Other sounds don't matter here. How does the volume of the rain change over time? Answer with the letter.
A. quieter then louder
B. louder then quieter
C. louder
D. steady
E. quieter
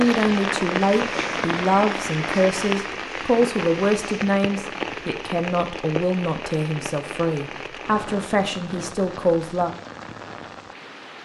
E.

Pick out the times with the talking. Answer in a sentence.
The talking can be heard from 0.0 to 9.7 s.